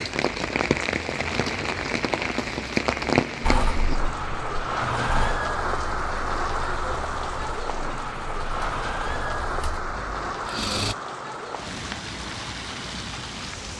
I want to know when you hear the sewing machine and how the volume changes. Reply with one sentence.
You can hear the sewing machine from 3.4 to 10.9 s, getting quieter.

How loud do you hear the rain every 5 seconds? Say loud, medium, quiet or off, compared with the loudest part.
loud, loud, medium.